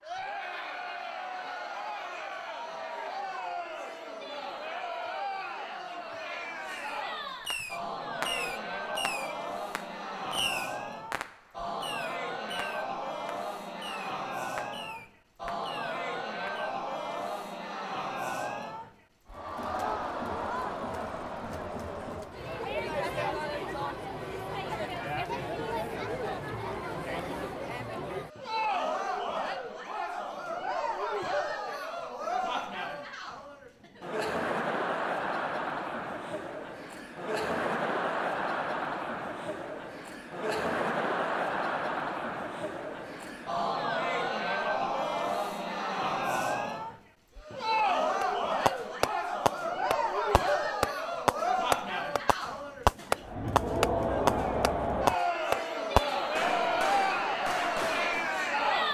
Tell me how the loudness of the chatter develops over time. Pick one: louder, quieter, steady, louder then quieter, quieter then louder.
louder.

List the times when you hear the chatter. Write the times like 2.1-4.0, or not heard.
0.0-58.8.